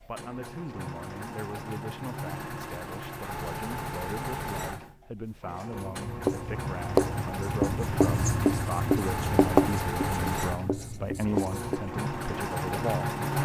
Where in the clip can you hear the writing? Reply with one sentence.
You can hear the writing from 5.7 to 11.8 s.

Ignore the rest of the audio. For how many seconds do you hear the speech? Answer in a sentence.
The speech can be heard for 13 seconds in total.